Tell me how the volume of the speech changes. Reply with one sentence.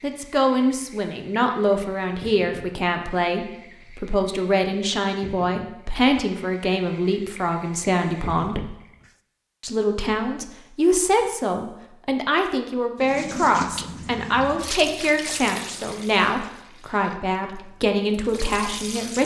The loudness of the speech stays about the same.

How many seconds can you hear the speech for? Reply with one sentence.
You can hear the speech for 18 seconds altogether.